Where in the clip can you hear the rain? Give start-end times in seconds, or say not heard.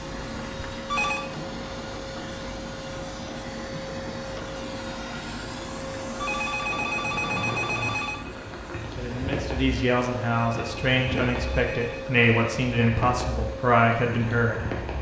0.0-14.9.